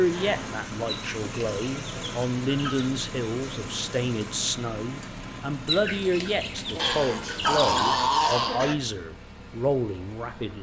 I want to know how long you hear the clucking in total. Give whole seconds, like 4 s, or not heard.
4 s.